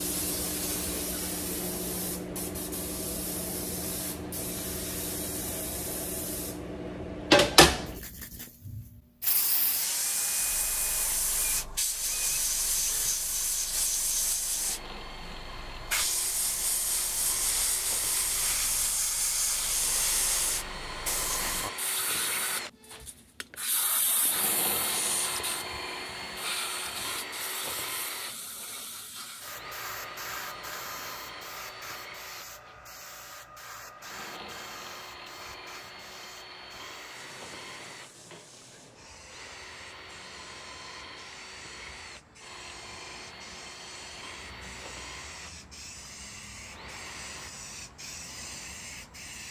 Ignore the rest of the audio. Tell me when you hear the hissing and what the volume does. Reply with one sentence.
You can hear the hissing from 0.0 to 49.4 s, getting quieter.